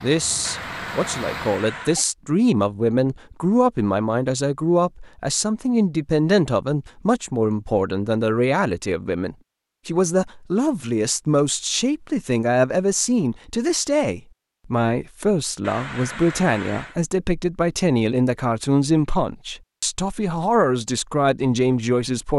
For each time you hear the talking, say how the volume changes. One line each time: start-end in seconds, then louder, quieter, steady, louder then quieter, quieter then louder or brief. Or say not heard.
0.0-22.3 steady.